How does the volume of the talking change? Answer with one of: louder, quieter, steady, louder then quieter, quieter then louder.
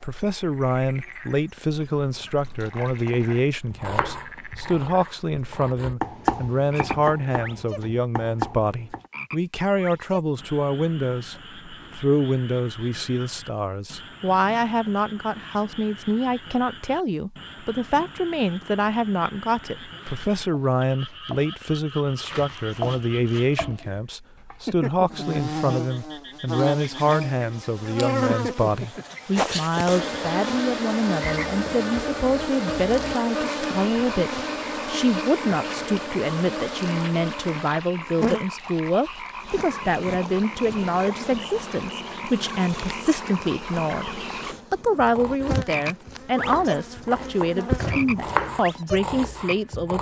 steady.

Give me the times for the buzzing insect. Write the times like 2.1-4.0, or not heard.
25.1-48.4.